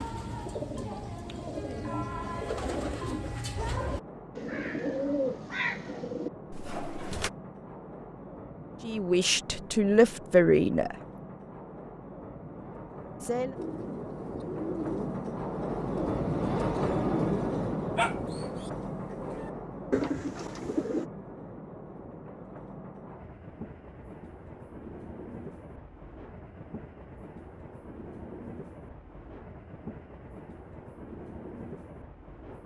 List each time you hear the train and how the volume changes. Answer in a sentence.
You can hear the train from 0.0 to 32.6 s, getting louder then quieter.